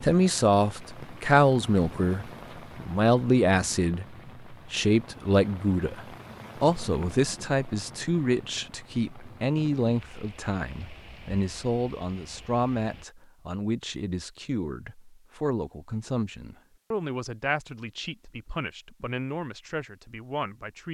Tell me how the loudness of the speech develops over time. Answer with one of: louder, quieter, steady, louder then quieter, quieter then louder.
quieter.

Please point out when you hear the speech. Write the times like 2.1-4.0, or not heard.
0.0-20.8.